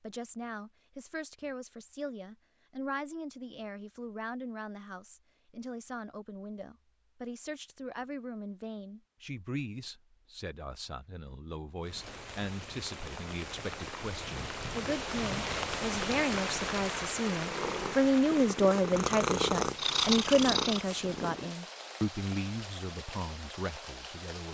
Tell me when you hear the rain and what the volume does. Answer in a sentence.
The rain can be heard from 11.8 to 24.5 s, getting louder then quieter.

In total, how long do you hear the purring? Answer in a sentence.
The purring can be heard for 4 seconds in total.